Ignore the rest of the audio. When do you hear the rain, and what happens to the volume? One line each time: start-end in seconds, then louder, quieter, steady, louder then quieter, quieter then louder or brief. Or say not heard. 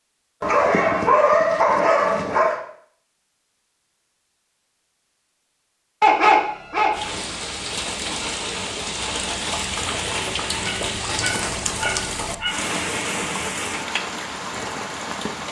6.9-15.4 steady.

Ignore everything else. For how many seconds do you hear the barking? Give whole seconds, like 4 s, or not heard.
5 s.